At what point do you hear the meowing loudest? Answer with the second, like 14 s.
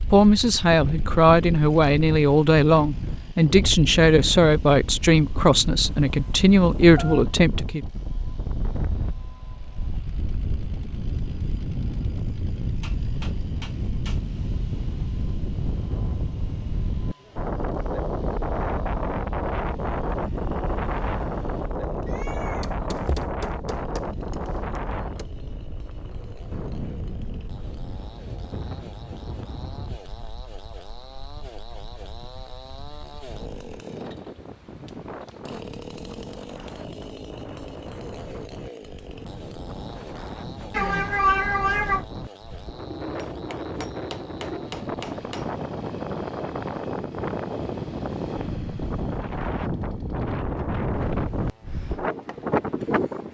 41 s.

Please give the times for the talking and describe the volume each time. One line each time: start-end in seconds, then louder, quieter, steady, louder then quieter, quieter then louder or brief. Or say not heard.
0.1-7.8 steady.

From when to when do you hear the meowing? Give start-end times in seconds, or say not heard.
5.8-7.2, 22.1-23.2, 40.7-42.0.